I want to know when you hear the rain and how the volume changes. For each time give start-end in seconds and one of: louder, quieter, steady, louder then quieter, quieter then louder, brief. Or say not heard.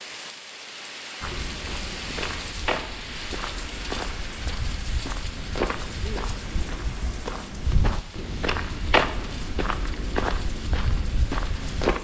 0.0-11.9 quieter.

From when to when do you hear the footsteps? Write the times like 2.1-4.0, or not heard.
1.2-11.9.